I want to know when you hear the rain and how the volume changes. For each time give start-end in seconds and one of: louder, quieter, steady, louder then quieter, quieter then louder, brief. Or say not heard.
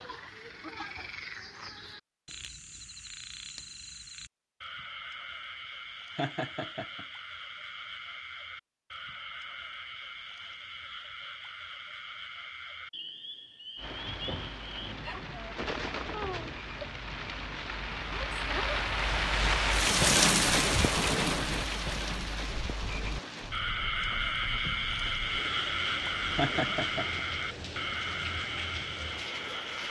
13.8-29.8 louder then quieter.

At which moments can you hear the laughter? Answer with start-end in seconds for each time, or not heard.
6.2-7.0, 26.4-27.2.